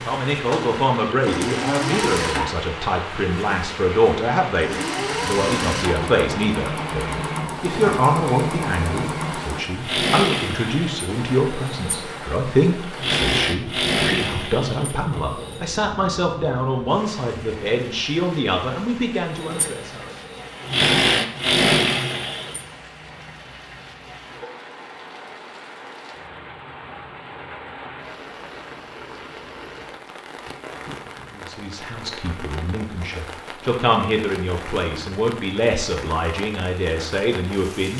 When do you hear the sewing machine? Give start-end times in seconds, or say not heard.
0.0-15.7, 19.4-22.6.